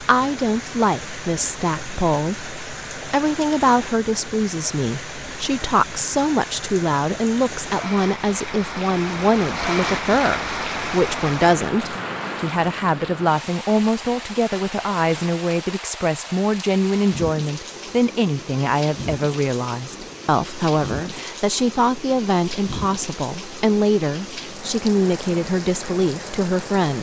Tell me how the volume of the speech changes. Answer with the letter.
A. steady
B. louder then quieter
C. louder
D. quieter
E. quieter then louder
A.